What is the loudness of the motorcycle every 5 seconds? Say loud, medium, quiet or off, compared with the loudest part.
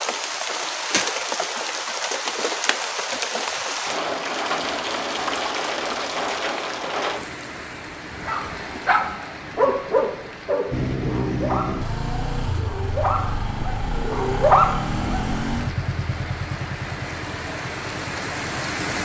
off, off, loud, loud.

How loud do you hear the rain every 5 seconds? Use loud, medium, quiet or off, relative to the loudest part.
loud, loud, quiet, medium.